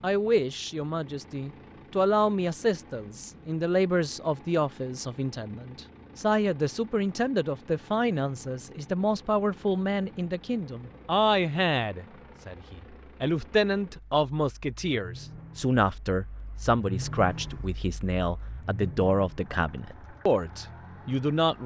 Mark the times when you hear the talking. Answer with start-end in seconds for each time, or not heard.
0.0-21.6.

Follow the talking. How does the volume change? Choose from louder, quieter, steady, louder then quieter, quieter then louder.
steady.